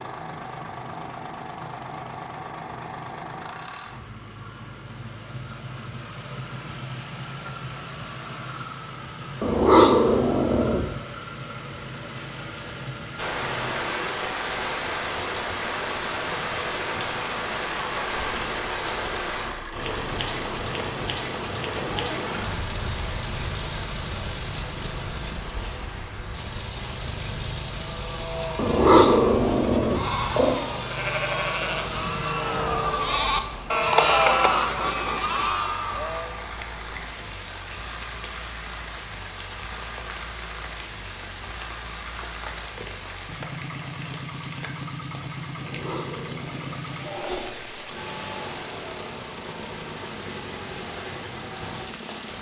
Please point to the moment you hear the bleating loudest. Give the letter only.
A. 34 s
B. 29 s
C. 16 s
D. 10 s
A.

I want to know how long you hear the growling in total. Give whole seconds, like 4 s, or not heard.
5 s.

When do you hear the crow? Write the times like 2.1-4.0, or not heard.
not heard.